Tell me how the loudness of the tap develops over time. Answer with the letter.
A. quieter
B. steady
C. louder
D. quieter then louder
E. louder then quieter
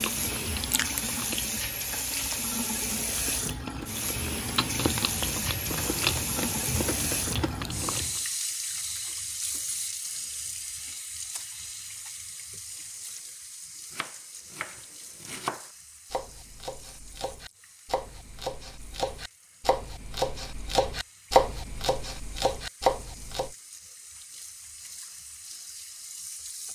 D.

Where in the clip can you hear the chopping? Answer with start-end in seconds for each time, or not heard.
13.9-23.6.